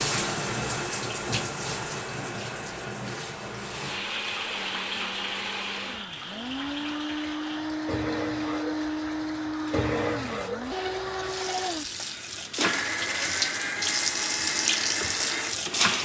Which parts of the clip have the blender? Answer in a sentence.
You can hear the blender from 3.6 to 15.9 s.